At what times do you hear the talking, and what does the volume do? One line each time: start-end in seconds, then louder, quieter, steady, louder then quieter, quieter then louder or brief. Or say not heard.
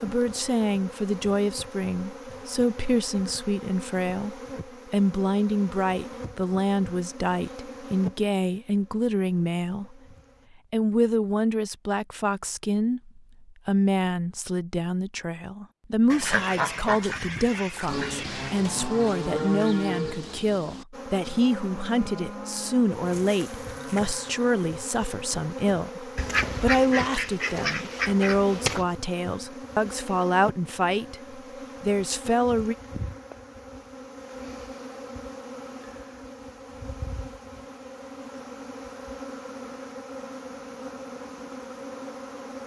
0.0-9.9 steady
10.7-32.8 steady.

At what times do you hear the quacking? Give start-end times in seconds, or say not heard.
16.1-18.6, 26.1-28.9.